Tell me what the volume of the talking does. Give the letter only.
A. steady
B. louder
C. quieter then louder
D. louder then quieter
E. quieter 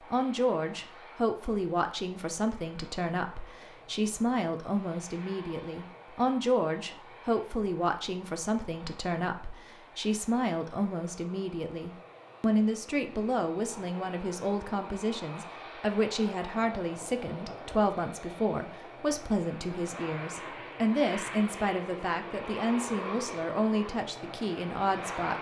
A.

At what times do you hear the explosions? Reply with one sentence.
You can't hear the explosions here.